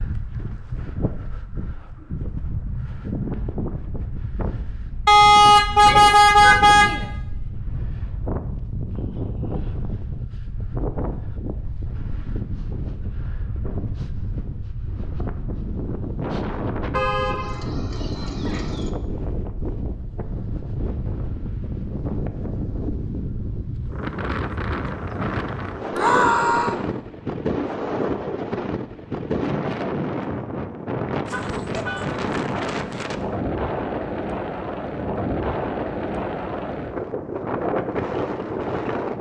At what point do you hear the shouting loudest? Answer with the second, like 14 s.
26 s.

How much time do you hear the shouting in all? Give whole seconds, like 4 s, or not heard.
2 s.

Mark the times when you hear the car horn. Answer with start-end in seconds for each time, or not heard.
5.0-7.0, 16.9-18.9, 31.3-32.0.